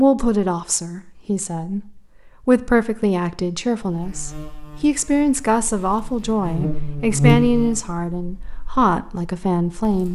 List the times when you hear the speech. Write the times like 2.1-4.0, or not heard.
0.0-10.0.